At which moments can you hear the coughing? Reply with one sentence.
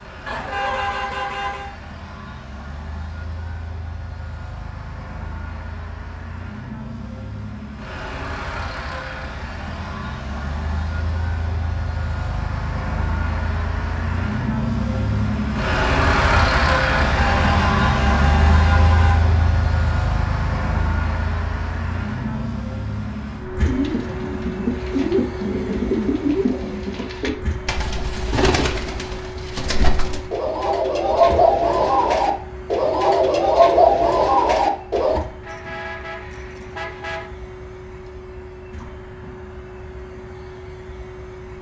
The coughing can't be heard in this clip.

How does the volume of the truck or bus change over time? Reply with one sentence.
The volume of the truck or bus goes up, then down.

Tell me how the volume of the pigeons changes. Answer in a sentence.
The volume of the pigeons goes up.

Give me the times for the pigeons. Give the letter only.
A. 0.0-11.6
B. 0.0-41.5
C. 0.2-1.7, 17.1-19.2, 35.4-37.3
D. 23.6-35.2
D.